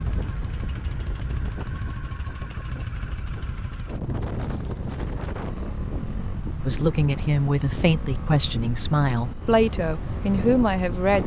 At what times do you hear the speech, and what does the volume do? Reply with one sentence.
The speech can be heard from 6.7 to 11.2 s, at a steady volume.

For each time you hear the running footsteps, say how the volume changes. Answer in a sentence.
The running footsteps can't be heard in this clip.